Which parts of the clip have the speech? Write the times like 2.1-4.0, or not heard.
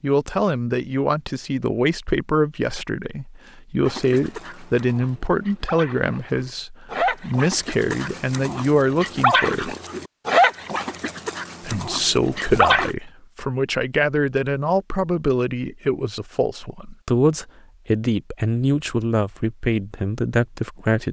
0.0-9.8, 11.6-21.0.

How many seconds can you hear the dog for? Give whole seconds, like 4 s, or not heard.
9 s.